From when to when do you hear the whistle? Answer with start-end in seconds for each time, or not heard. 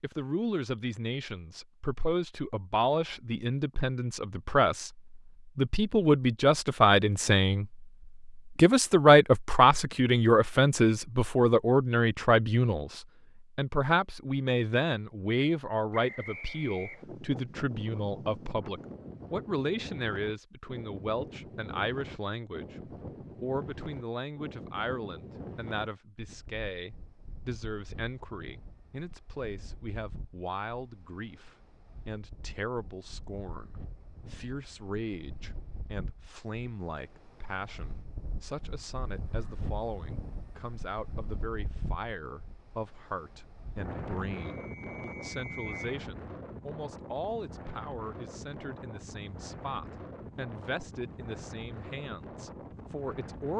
15.9-17.1, 44.5-45.9.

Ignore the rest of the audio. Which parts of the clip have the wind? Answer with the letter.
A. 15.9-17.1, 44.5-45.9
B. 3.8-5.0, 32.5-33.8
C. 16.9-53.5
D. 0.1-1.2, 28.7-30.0
C.